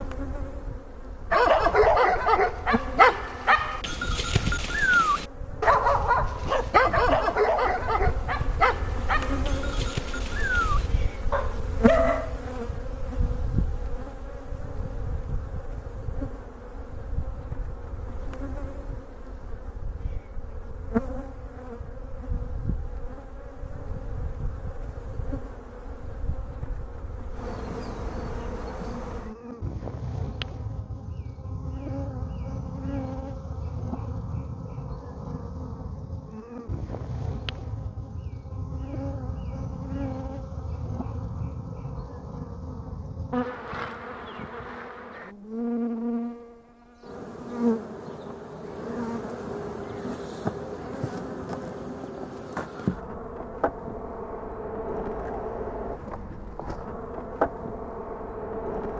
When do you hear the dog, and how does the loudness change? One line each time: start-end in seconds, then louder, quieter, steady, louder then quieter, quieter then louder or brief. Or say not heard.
1.3-12.3 quieter.